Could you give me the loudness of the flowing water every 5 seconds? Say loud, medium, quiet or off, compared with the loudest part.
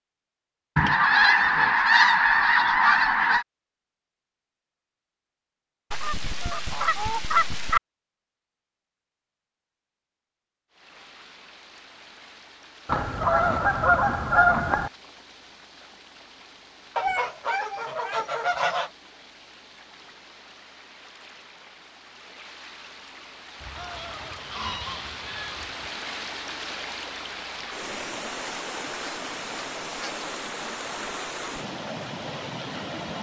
off, off, quiet, quiet, medium, loud, loud.